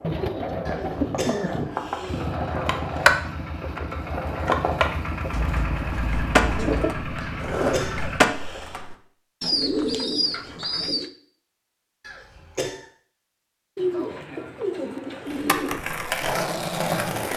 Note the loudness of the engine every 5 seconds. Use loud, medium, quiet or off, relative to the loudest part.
loud, loud, off, off.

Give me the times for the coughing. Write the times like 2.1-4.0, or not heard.
0.7-2.2, 7.2-8.8, 12.0-12.8.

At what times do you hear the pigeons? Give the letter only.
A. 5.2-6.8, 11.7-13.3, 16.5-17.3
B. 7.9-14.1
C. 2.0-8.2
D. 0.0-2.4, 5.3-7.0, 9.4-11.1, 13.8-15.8
D.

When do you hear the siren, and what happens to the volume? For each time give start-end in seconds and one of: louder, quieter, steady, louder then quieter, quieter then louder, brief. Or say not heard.
not heard.